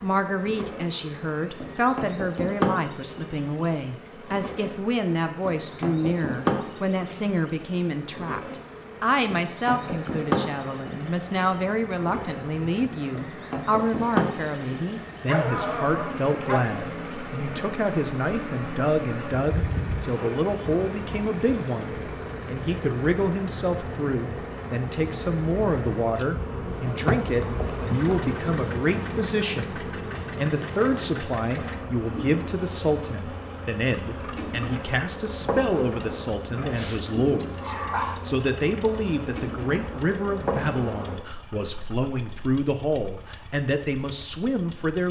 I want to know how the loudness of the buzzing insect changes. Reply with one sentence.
The loudness of the buzzing insect stays about the same.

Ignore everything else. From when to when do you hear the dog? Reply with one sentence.
You can hear the dog from 15.2 to 16.8 s and from 36.8 to 38.1 s.